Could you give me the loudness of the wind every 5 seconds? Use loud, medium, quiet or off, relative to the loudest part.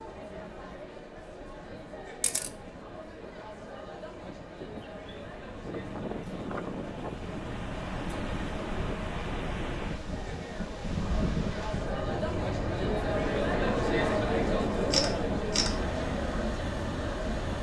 quiet, loud, loud, loud.